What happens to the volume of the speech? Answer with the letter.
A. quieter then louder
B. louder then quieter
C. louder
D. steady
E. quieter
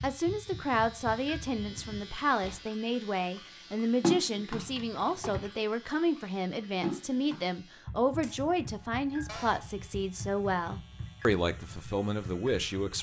D.